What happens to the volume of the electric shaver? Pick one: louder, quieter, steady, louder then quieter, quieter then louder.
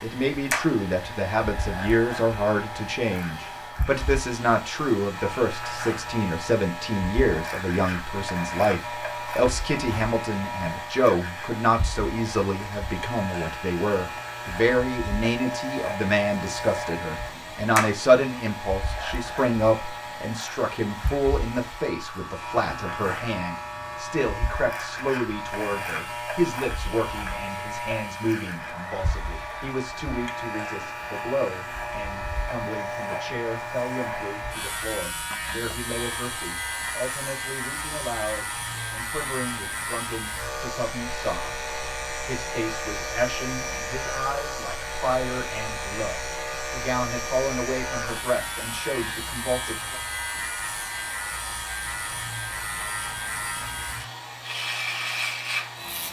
steady.